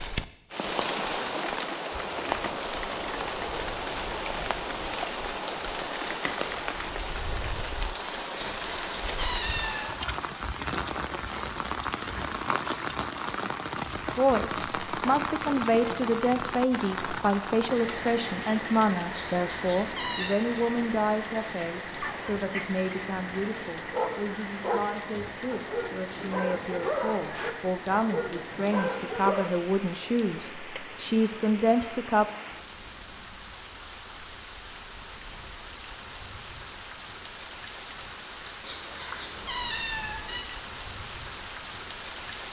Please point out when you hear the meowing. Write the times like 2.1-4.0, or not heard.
8.3-9.9, 19.1-20.4, 38.6-40.4.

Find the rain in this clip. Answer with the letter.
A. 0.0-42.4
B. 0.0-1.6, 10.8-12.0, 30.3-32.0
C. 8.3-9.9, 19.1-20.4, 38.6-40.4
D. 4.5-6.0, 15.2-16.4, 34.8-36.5
A.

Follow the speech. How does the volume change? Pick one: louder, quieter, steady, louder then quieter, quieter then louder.
quieter then louder.